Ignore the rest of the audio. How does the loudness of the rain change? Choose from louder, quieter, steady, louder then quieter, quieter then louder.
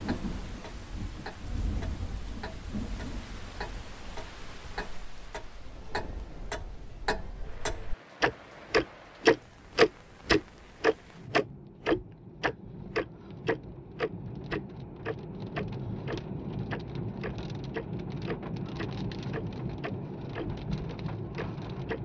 quieter then louder.